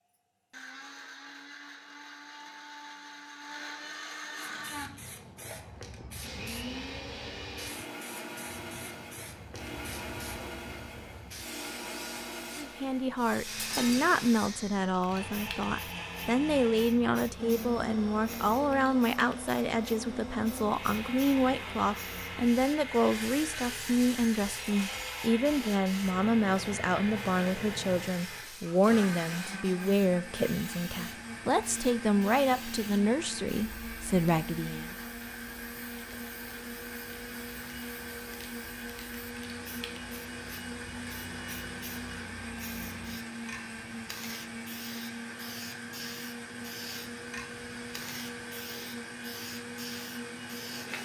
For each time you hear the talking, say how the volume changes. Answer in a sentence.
You can hear the talking from 12.6 to 35.0 s, at a steady volume.